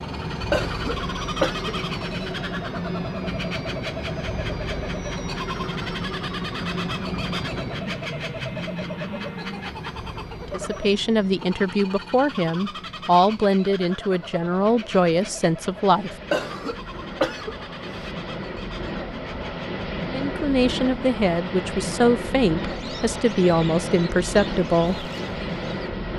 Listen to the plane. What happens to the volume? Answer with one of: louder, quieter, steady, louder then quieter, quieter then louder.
quieter then louder.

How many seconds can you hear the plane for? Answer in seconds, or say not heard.
26 s.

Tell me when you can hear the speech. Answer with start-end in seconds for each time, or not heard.
10.5-16.1, 20.1-25.1.